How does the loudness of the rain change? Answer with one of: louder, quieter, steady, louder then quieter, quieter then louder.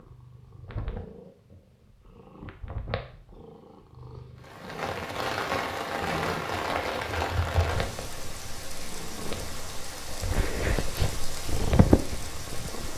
quieter.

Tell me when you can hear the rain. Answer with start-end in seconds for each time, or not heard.
4.4-12.9.